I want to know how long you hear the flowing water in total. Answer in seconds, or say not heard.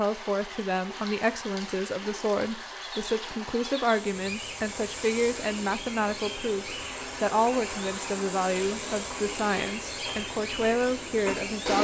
12 s.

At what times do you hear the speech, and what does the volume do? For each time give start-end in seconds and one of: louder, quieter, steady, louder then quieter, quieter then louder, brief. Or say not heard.
0.0-11.7 steady.